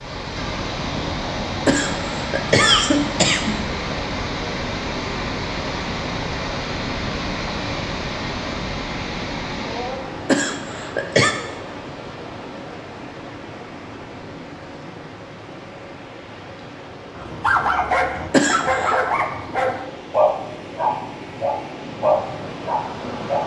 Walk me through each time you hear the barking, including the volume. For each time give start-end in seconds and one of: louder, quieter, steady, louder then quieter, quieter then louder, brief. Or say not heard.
17.1-23.4 steady.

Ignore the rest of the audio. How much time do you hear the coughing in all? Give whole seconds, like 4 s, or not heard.
4 s.